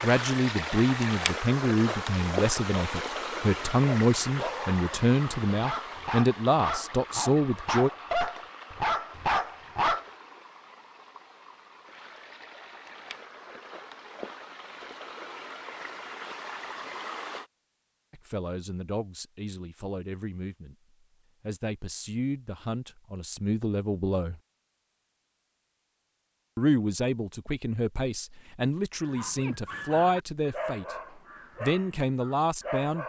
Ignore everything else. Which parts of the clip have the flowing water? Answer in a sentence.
The flowing water can be heard from 0.0 to 17.5 s.